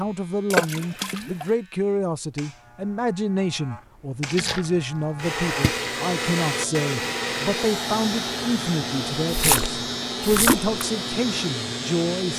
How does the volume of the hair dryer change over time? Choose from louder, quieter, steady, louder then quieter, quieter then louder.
quieter.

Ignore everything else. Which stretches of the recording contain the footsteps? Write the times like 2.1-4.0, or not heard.
not heard.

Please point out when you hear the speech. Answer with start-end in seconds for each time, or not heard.
0.0-12.3.